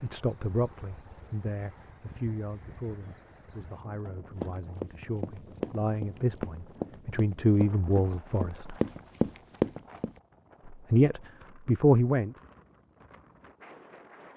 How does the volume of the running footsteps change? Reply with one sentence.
The volume of the running footsteps goes up.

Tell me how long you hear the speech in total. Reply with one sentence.
The speech can be heard for 10 seconds in total.